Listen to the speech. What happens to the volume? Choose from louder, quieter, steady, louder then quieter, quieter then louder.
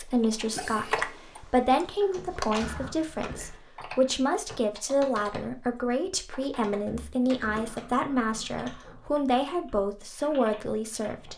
steady.